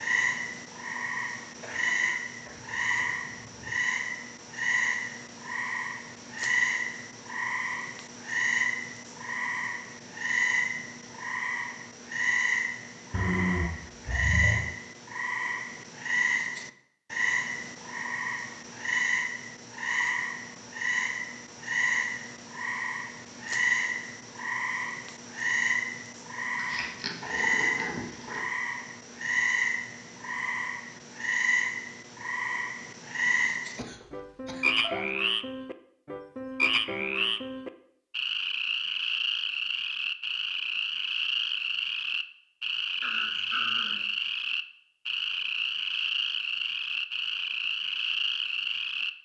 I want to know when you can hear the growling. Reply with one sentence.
You can hear the growling from 13.1 to 14.7 s, from 26.6 to 28.4 s and from 43.0 to 44.0 s.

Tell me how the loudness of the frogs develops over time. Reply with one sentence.
The volume of the frogs stays about the same.